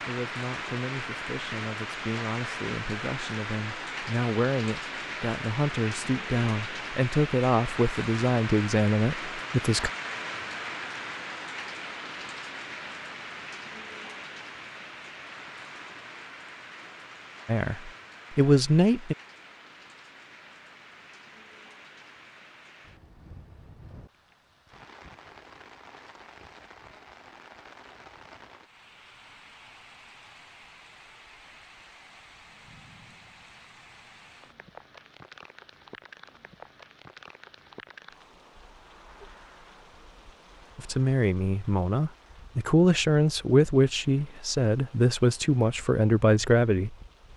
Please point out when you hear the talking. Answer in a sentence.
You can hear the talking from 0.0 to 9.9 s, from 17.4 to 19.1 s and from 40.8 to 47.3 s.